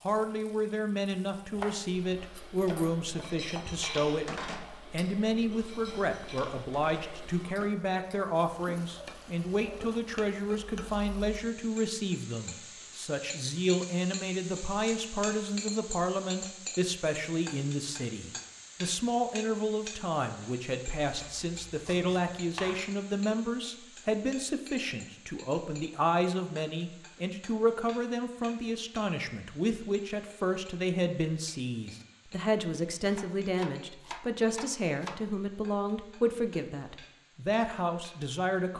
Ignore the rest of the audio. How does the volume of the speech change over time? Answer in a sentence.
The loudness of the speech stays about the same.